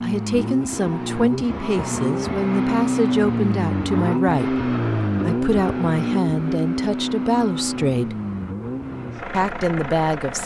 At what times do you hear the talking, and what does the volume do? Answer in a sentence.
You can hear the talking from 0.0 to 8.2 s, at a steady volume; and briefly from 9.3 to 10.4 s.